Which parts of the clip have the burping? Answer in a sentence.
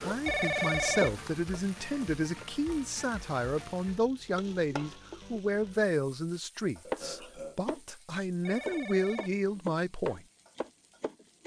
You can hear the burping from 6.8 to 7.6 s.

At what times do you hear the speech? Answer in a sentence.
The speech can be heard from 0.0 to 10.2 s.